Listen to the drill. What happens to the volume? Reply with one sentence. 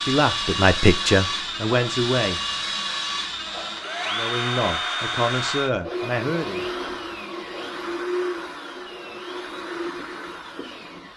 The loudness of the drill goes down.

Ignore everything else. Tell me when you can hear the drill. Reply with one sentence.
You can hear the drill from 0.0 to 11.1 s.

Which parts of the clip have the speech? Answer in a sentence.
You can hear the speech from 0.0 to 2.4 s and from 4.0 to 6.7 s.